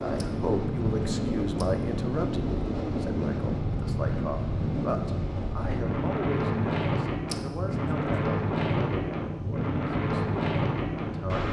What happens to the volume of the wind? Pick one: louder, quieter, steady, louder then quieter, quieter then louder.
steady.